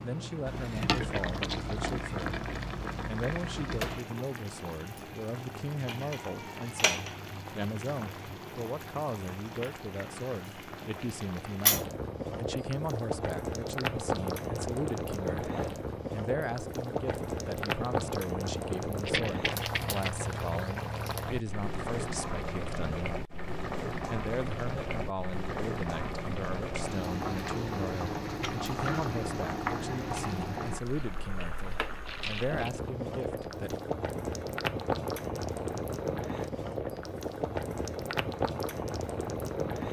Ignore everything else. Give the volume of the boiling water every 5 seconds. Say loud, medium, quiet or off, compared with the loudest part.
loud, medium, loud, loud, loud, loud, loud, loud.